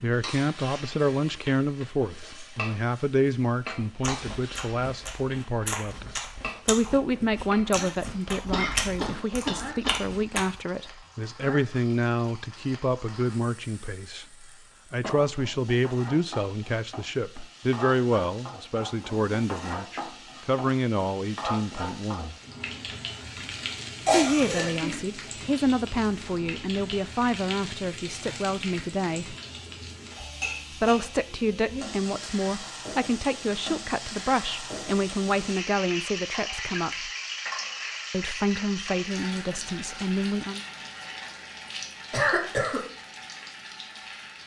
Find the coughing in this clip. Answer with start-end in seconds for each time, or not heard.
8.5-9.9, 24.1-25.0, 42.1-42.8.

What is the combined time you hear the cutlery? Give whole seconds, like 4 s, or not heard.
not heard.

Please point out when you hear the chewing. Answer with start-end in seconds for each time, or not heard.
4.0-10.5.